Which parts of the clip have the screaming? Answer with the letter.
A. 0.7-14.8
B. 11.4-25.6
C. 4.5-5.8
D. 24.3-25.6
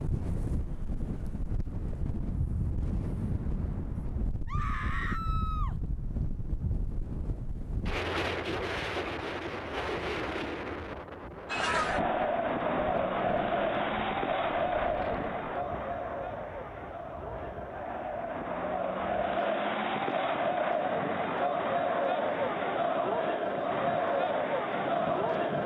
C.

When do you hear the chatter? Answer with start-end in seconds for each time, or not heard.
11.4-25.6.